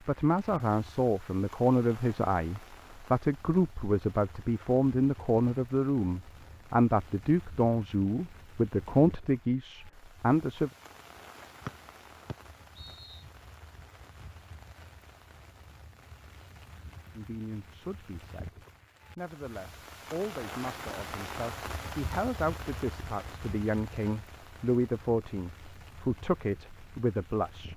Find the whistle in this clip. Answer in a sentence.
You can hear the whistle from 11.7 to 13.2 s.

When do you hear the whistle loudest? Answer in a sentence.
The loudest moment of the whistle is at 12 seconds.